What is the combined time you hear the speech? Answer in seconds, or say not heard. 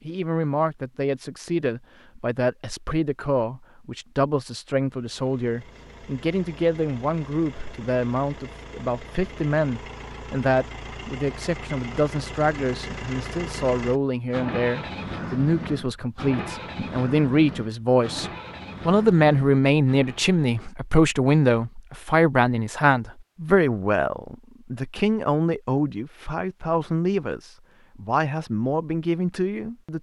30 s.